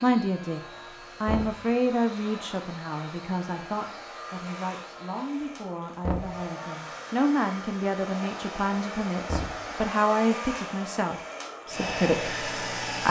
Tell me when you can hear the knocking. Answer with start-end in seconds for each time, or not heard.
1.2-1.7, 6.0-6.5, 9.2-9.7.